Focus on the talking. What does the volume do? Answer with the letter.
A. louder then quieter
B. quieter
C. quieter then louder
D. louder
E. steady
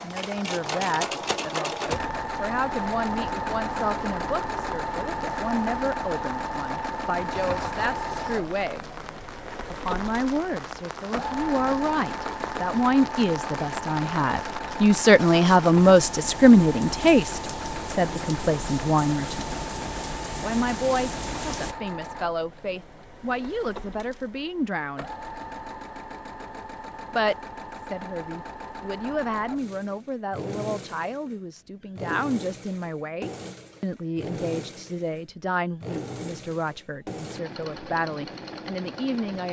A.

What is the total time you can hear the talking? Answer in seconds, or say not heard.
36 s.